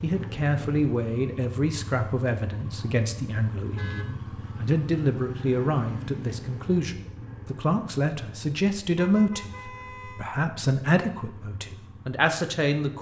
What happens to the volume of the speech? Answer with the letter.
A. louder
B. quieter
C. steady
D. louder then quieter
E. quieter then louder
C.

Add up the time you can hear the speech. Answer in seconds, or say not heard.
13 s.